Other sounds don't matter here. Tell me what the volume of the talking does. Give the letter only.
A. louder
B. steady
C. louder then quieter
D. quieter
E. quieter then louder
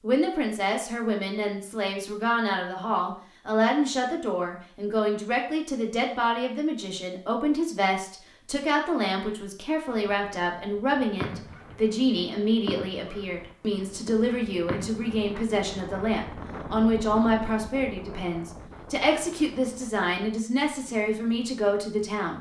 B.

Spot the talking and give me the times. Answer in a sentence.
You can hear the talking from 0.0 to 22.3 s.